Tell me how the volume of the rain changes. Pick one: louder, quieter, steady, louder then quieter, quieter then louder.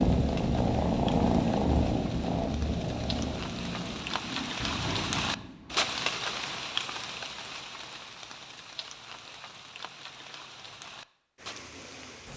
louder then quieter.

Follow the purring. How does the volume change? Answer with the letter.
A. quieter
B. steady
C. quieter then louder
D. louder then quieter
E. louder
A.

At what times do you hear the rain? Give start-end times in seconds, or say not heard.
0.0-12.3.